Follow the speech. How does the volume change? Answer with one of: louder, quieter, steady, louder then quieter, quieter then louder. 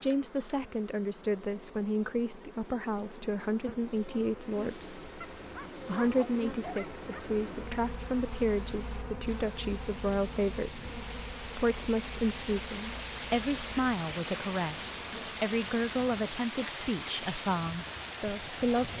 steady.